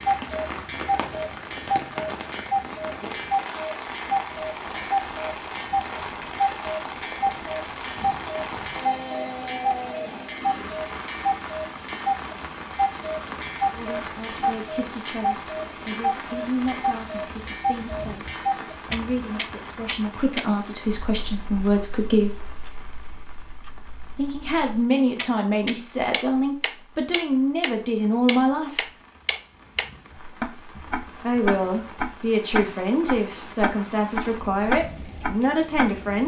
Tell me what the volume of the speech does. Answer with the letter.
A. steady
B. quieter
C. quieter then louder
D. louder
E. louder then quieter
D.